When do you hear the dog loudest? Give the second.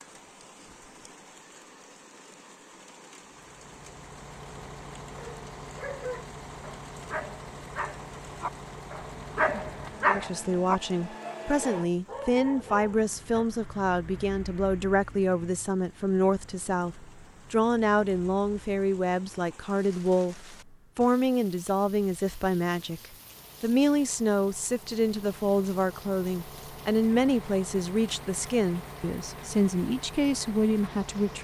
10 s.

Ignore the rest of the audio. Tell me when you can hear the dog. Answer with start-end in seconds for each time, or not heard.
5.2-13.4.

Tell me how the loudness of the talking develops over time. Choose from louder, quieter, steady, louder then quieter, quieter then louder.
steady.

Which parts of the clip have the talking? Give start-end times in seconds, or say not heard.
10.1-23.0, 23.6-31.4.